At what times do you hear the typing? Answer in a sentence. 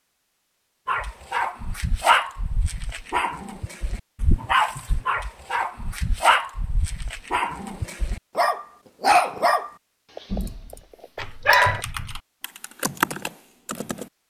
The typing can be heard from 10.2 to 14.1 s.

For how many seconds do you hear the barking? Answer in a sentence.
The barking can be heard for 11 seconds in total.